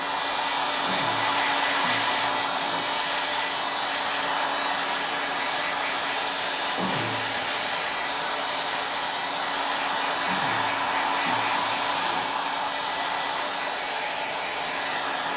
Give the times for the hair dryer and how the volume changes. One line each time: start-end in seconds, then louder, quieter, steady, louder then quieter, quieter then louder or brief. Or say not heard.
0.0-15.3 steady.